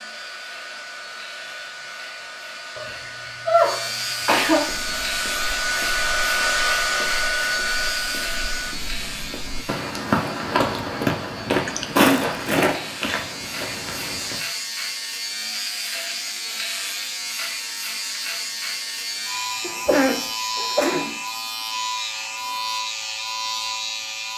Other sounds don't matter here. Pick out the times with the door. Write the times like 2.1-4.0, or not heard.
not heard.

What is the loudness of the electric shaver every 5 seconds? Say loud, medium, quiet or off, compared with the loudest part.
medium, loud, medium, loud, loud.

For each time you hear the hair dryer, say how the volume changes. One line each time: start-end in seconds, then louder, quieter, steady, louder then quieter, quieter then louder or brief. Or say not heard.
0.0-8.8 louder.